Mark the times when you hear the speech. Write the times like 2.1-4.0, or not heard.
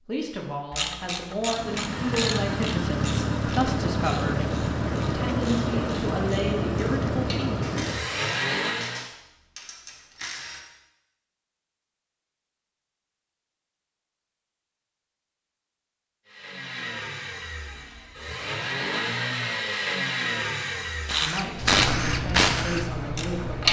0.1-7.6, 21.2-23.6.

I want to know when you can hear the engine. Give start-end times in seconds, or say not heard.
1.4-9.1, 16.2-23.6.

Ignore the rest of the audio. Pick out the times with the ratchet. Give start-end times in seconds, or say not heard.
0.7-10.6, 21.1-23.6.